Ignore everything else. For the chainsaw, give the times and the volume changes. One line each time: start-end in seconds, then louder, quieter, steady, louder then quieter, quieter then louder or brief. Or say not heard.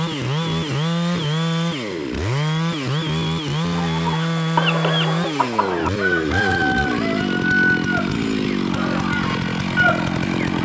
0.0-10.6 steady.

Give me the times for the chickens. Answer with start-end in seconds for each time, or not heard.
3.7-10.6.